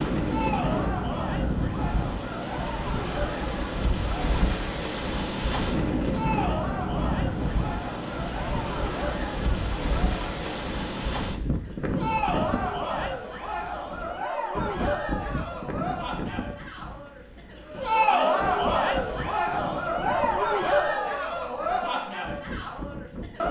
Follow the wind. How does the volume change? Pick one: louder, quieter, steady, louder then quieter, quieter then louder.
quieter.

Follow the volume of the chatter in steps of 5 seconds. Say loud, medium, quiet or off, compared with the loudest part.
medium, medium, loud, loud, loud.